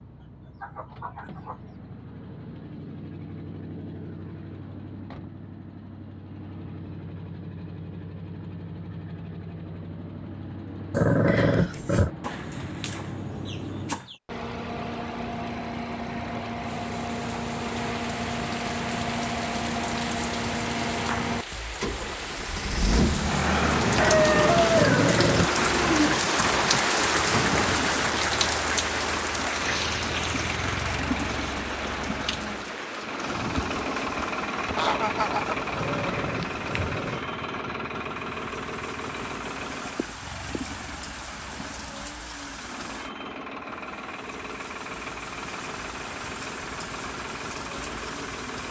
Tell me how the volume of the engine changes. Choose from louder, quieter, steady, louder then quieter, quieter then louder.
louder then quieter.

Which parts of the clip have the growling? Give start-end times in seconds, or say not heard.
10.9-12.1, 24.8-25.5, 35.7-37.2.